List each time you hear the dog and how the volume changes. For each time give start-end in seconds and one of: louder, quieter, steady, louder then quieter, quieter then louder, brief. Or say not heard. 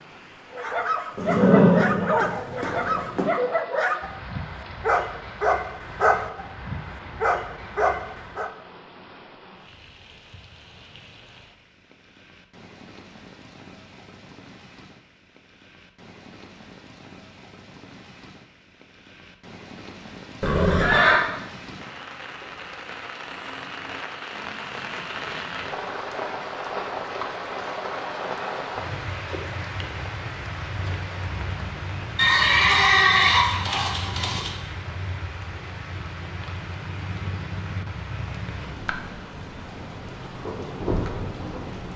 0.5-8.5 steady.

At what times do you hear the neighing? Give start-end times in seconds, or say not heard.
1.1-3.2, 20.4-21.2, 32.1-34.5.